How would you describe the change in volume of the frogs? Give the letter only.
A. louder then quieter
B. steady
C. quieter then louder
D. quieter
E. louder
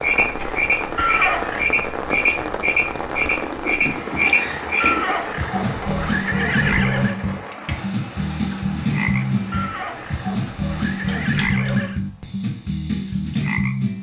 B.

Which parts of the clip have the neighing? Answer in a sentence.
You can hear the neighing from 0.9 to 1.8 s, from 4.8 to 7.2 s and from 9.5 to 12.0 s.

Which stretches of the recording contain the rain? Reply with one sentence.
The rain can be heard from 0.0 to 13.9 s.